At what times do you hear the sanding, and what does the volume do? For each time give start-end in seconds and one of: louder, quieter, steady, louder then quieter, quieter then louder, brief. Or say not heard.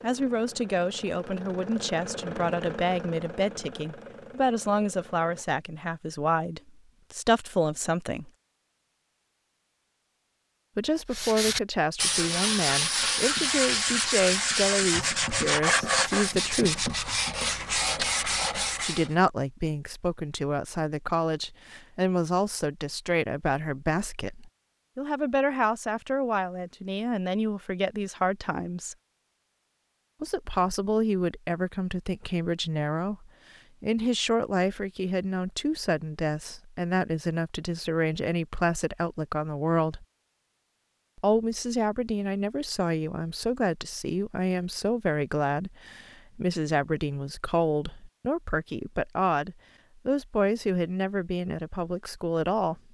11.1-19.1 steady.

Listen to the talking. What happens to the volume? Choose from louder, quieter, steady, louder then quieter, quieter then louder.
steady.